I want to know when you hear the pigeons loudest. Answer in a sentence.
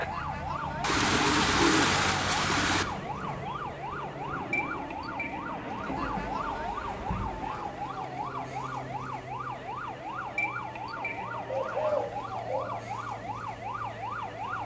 The loudest moment of the pigeons is at 2 seconds.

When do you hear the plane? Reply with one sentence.
The plane can be heard from 0.0 to 14.6 s.